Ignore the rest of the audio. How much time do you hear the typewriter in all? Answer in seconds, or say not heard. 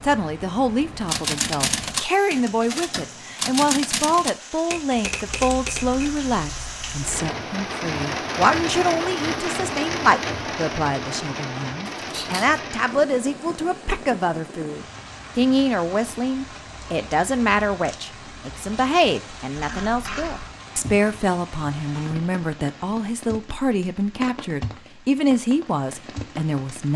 5 s.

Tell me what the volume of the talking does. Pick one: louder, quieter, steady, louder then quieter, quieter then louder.
steady.